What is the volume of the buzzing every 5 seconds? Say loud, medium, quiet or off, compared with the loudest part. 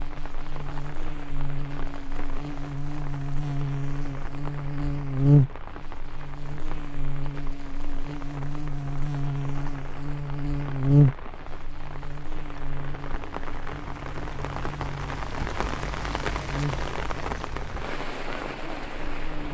medium, loud, loud, medium.